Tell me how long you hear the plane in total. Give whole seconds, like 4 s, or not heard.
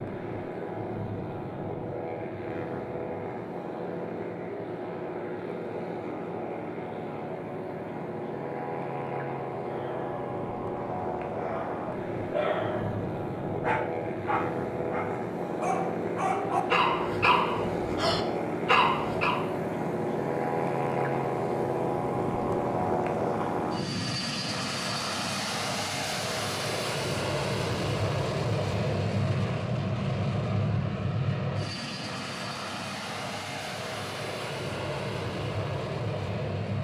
37 s.